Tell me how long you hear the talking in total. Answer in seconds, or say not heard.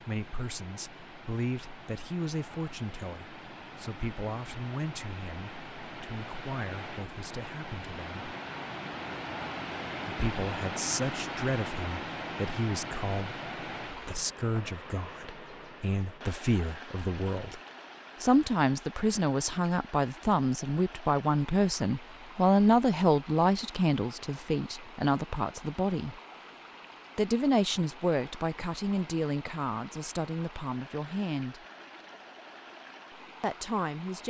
29 s.